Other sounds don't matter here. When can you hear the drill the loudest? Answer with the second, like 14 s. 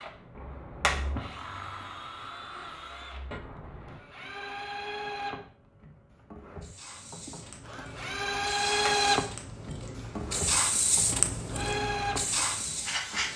9 s.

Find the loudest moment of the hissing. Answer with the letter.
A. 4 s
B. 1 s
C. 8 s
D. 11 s
D.